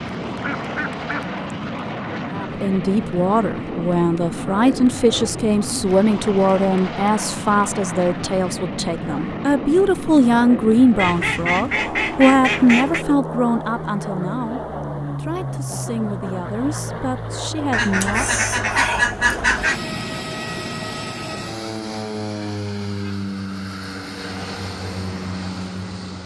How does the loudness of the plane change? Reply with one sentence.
The volume of the plane stays about the same.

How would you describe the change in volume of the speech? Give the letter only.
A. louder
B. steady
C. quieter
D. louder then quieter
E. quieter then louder
C.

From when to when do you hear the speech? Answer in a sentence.
You can hear the speech from 2.3 to 18.2 s.